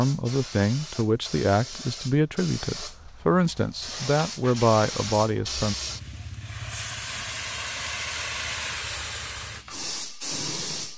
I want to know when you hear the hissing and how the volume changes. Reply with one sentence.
You can hear the hissing from 0.0 to 10.9 s, getting louder.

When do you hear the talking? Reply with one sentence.
The talking can be heard from 0.0 to 5.8 s.